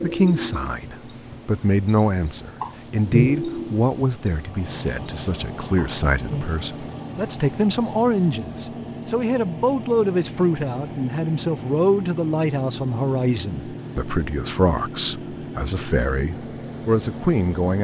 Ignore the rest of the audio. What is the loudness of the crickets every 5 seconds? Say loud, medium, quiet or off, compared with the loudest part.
loud, medium, medium, medium.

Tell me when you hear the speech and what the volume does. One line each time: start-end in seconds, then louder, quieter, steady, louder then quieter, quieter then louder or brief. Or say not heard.
0.0-17.8 steady.